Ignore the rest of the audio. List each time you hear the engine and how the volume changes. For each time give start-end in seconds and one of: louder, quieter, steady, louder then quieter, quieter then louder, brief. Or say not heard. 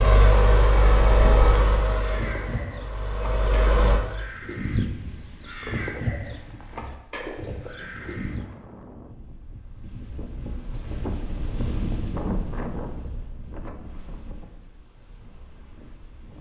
0.0-4.0 quieter then louder.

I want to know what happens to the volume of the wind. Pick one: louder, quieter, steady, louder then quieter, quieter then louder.
louder then quieter.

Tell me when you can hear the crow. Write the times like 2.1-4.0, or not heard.
1.1-8.4.